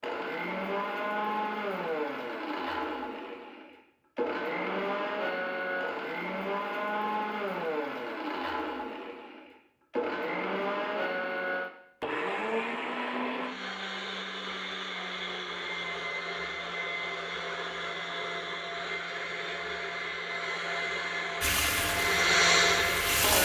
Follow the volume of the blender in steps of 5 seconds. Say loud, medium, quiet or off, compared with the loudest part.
medium, medium, medium, medium, loud.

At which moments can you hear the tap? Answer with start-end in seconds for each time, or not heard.
21.4-23.3.